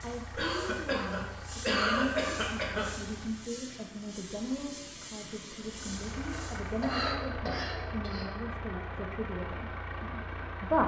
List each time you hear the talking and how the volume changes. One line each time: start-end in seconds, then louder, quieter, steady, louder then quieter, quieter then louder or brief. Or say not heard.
0.0-10.8 steady.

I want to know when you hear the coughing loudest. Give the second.
2 s.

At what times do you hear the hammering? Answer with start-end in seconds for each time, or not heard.
not heard.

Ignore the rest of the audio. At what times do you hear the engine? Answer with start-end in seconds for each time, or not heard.
0.0-3.5, 5.6-10.8.